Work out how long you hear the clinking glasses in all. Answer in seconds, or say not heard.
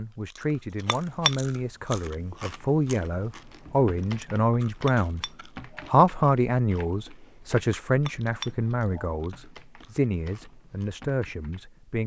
3 s.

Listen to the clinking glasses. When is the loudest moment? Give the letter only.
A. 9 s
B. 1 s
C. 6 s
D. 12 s
B.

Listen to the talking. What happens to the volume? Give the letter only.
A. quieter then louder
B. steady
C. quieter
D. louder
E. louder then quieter
E.